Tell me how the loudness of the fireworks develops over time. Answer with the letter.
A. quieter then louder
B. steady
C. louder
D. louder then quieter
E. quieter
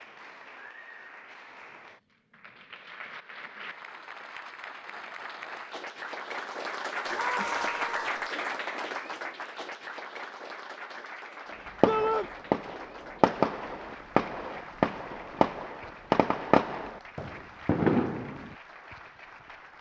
C.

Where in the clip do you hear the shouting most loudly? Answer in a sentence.
The loudest moment of the shouting is at 12 seconds.